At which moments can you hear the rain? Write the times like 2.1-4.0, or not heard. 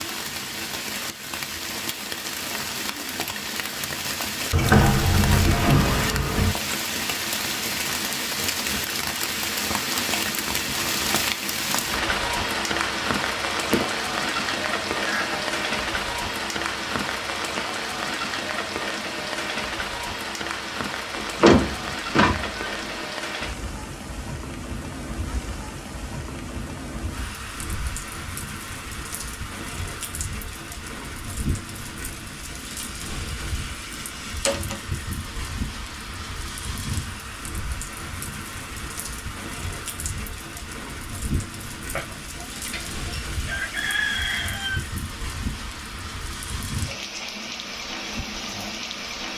0.0-49.3.